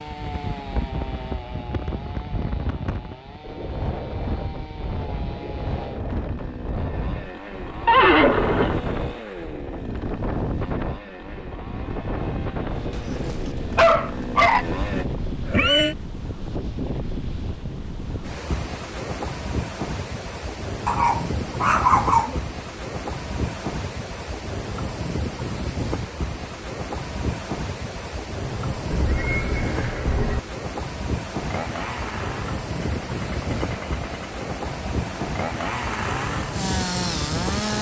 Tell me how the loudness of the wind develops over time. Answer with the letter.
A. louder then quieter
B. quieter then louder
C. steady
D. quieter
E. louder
C.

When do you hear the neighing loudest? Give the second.
8 s.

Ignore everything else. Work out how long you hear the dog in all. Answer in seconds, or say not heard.
3 s.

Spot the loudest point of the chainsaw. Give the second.
37 s.